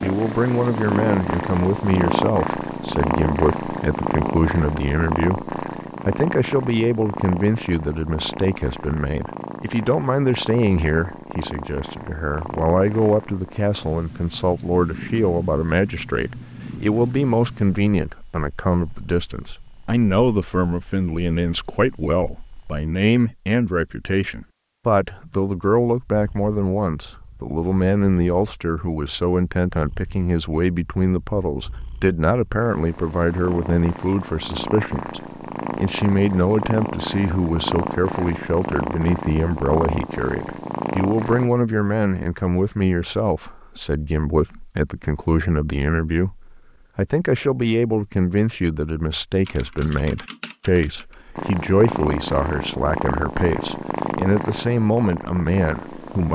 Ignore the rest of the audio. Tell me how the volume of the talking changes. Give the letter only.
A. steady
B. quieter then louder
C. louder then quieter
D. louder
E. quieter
A.